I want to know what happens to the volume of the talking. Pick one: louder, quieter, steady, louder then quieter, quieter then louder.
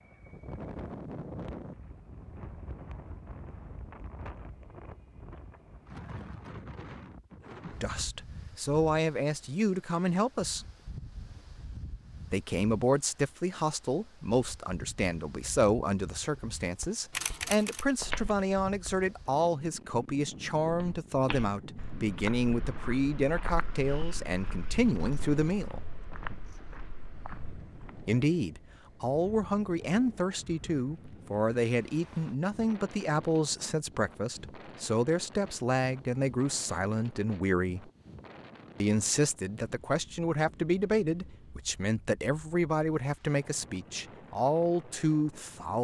steady.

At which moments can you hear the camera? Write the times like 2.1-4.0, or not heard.
17.1-17.9.